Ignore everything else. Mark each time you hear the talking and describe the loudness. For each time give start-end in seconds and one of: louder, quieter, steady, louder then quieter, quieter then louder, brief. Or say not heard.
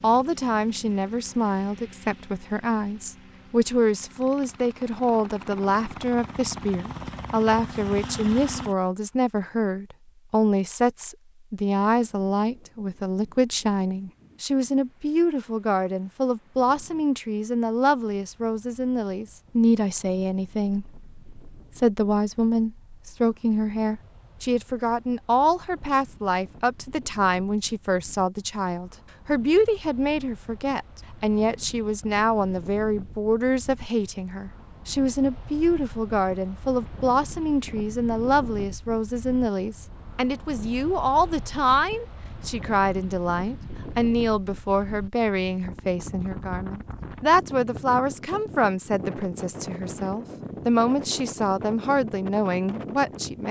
0.0-53.4 steady.